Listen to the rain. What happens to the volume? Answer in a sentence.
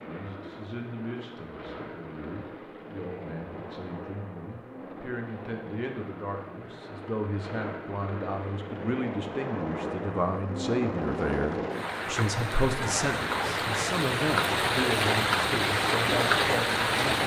The loudness of the rain goes up.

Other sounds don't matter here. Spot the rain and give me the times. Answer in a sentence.
The rain can be heard from 0.0 to 17.2 s.